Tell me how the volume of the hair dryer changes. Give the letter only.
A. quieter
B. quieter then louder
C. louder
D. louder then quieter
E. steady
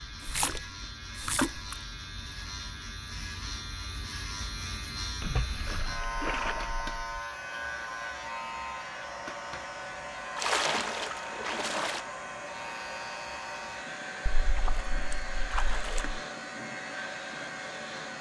E.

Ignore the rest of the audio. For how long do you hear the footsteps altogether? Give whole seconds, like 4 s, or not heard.
not heard.